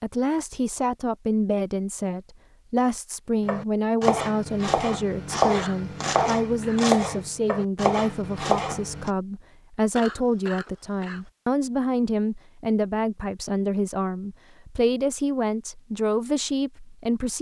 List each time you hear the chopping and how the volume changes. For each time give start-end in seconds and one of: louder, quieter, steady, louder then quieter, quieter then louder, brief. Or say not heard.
3.5-9.1 steady.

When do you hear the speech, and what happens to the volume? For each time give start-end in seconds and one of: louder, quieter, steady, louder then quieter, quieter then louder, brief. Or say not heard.
0.0-17.3 steady.